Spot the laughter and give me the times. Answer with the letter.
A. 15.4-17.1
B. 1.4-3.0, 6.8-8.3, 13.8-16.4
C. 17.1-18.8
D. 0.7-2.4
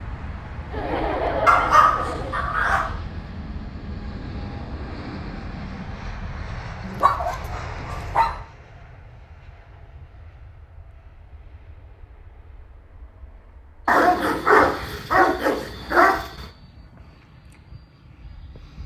D.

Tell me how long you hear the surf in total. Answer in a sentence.
You can't hear the surf here.